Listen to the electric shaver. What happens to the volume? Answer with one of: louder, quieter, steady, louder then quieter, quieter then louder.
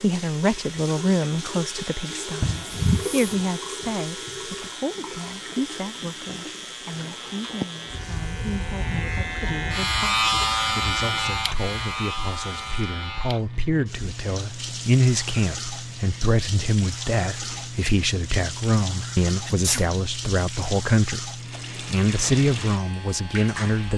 louder then quieter.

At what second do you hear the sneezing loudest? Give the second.
3 s.